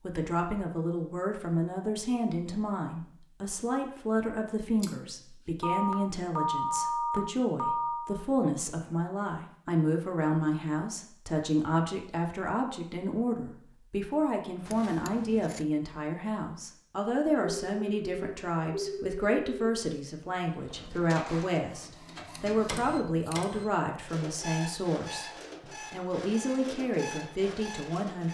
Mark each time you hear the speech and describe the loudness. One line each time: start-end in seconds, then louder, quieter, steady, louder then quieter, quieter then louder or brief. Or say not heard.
0.0-28.2 steady.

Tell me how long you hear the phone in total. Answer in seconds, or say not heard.
5 s.